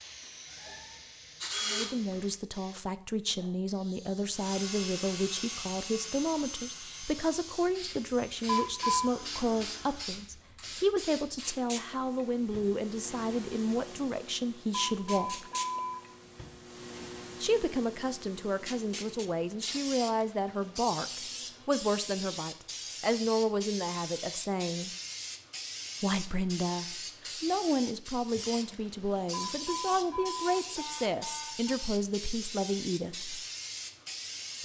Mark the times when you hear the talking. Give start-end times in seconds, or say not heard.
1.6-15.5, 17.4-24.9, 26.0-33.4.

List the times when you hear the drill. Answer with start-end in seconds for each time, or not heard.
0.0-2.2, 4.3-10.4.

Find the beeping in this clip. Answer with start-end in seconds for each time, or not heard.
8.4-9.1, 14.7-16.0, 29.3-31.8.